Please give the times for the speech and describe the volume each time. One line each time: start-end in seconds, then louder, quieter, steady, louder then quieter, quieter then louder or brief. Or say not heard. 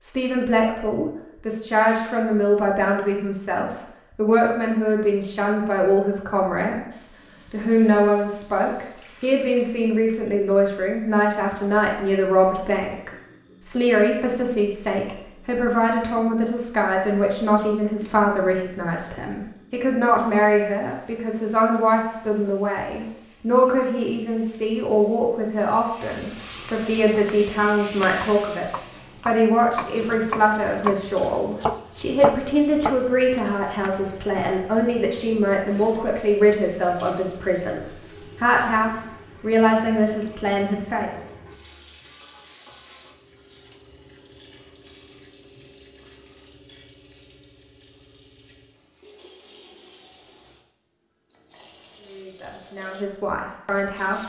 0.0-41.2 steady
52.0-54.2 brief.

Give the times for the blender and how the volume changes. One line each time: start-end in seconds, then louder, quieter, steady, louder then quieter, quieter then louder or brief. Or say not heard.
not heard.